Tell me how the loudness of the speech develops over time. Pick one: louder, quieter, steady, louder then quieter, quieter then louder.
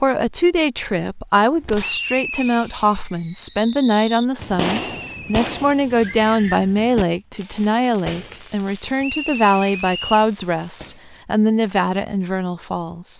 steady.